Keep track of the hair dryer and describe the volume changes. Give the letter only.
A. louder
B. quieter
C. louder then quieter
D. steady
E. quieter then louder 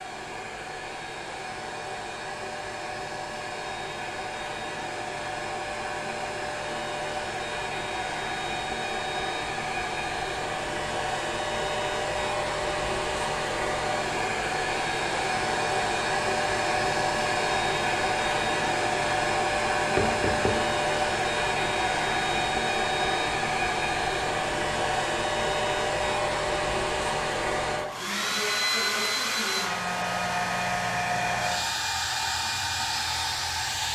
A.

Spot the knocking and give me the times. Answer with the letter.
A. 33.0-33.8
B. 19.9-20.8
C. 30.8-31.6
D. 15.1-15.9
B.